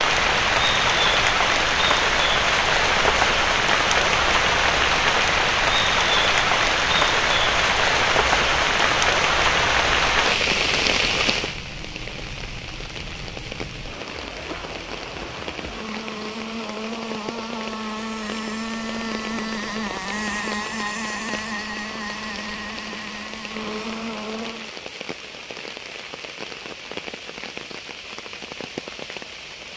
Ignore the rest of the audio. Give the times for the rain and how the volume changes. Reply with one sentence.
You can hear the rain from 0.0 to 29.7 s, getting quieter.